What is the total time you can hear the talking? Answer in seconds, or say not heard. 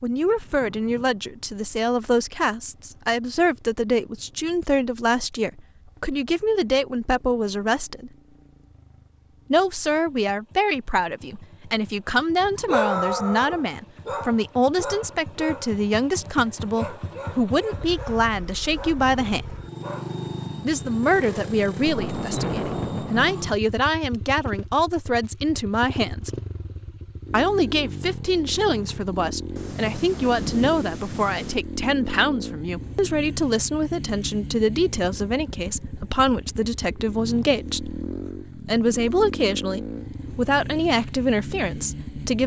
39 s.